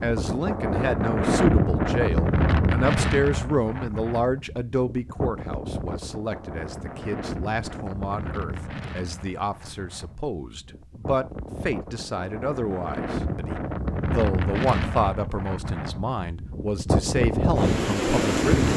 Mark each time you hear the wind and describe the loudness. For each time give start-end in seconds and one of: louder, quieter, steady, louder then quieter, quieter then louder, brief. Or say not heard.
0.0-18.7 quieter then louder.